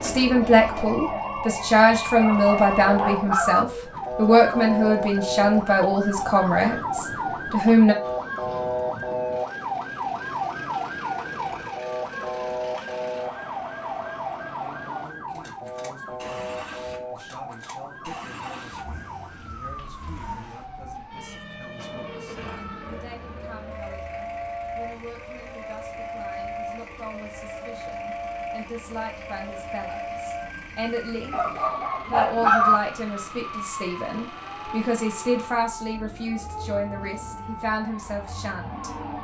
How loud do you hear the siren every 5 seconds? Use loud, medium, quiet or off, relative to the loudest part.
loud, loud, loud, medium, medium, medium, medium, medium.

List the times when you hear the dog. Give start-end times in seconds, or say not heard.
2.1-3.6, 31.3-32.8.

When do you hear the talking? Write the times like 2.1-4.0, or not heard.
0.0-8.0, 14.6-39.1.